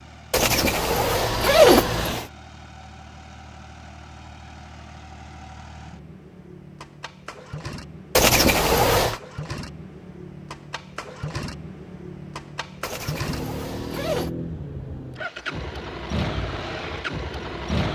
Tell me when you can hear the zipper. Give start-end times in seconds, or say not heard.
0.3-2.2, 8.2-9.2, 12.8-14.3.